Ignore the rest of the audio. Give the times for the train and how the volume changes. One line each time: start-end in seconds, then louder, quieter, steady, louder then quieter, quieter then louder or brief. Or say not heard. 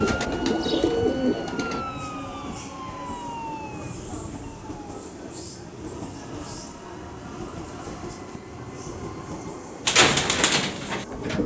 0.1-11.4 steady.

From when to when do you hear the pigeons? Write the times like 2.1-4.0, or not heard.
0.0-1.9, 9.8-11.4.